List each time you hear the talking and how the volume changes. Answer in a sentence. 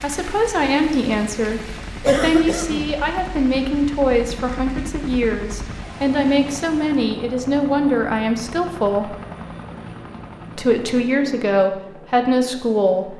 You can hear the talking from 0.0 to 9.2 s, at a steady volume; and briefly from 10.6 to 13.1 s.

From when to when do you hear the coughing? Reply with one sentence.
The coughing can be heard from 2.0 to 2.9 s.